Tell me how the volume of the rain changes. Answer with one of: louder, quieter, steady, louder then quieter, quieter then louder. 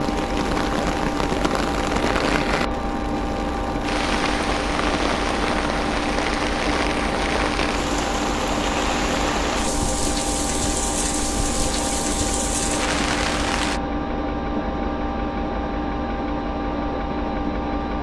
steady.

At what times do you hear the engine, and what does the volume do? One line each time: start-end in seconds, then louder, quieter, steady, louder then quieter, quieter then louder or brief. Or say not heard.
0.0-17.9 steady.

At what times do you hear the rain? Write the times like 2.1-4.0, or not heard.
0.0-13.8.